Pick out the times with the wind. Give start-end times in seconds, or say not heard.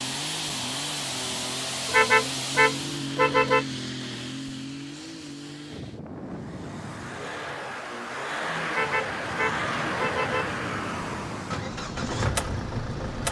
5.7-13.2.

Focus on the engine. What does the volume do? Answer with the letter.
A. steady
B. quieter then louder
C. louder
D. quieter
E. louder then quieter
B.